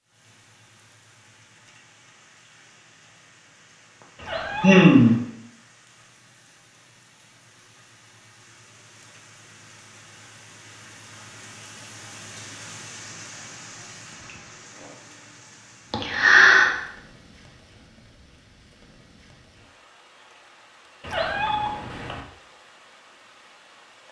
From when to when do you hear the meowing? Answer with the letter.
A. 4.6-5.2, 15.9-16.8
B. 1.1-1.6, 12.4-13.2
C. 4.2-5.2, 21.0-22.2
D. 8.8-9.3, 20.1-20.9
C.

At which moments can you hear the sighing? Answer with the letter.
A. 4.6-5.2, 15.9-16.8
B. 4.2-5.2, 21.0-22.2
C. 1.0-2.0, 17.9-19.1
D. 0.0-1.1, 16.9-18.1
A.